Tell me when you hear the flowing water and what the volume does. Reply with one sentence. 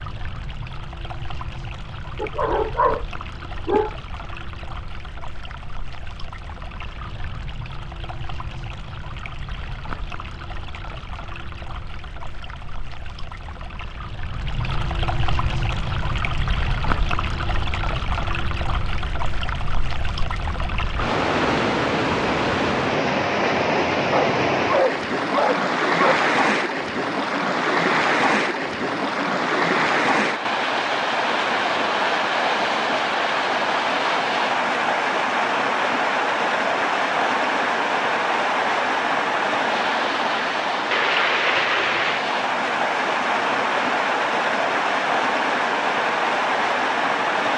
The flowing water can be heard from 0.0 to 47.5 s, getting louder.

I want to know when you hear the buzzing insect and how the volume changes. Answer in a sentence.
The buzzing insect can't be heard in this clip.